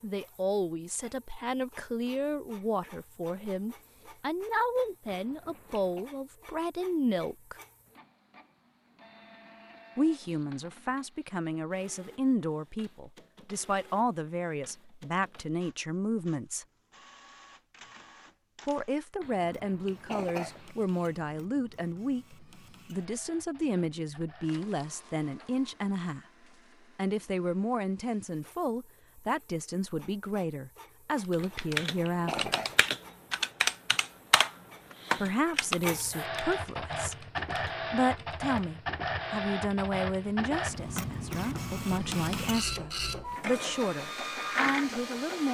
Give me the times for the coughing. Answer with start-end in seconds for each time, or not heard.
5.0-6.0, 19.2-20.8, 31.4-32.9.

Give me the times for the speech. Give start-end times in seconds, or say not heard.
0.0-7.5, 9.9-16.6, 18.6-26.2, 26.9-32.5, 35.1-45.4.